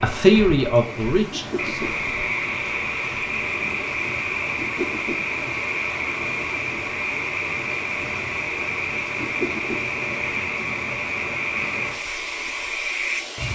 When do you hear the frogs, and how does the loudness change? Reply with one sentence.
You can hear the frogs from 0.0 to 13.5 s, at a steady volume.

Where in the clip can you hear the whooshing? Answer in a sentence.
The whooshing can be heard from 1.3 to 2.0 s, from 4.5 to 5.2 s and from 9.2 to 9.8 s.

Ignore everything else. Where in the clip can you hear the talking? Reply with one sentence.
You can hear the talking from 0.0 to 1.9 s.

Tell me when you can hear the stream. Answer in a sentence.
You can hear the stream from 0.0 to 13.5 s.